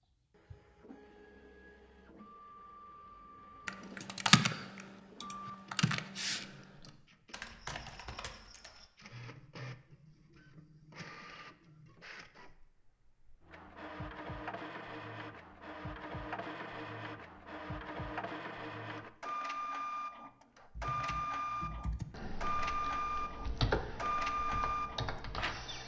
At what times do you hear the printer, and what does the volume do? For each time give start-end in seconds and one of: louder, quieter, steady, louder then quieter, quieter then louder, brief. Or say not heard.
0.0-25.8 louder.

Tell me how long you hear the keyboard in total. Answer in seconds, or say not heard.
10 s.